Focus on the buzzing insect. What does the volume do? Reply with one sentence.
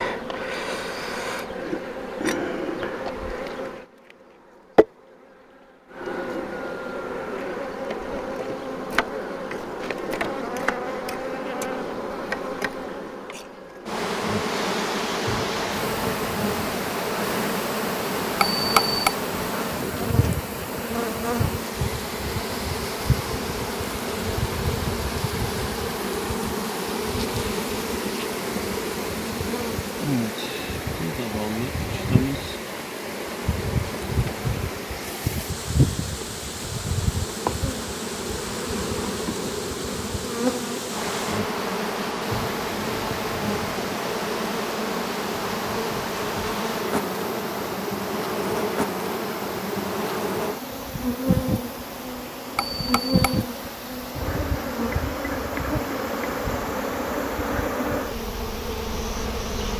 The volume of the buzzing insect stays about the same.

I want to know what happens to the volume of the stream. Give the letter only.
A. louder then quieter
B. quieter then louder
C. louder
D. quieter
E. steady
D.